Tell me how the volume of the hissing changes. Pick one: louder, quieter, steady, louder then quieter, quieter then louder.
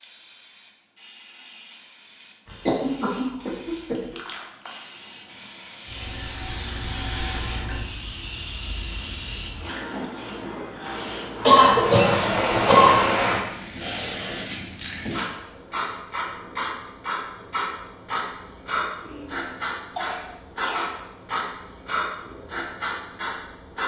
louder.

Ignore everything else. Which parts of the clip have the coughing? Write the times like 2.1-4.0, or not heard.
2.5-4.2, 11.4-13.0, 19.1-20.9.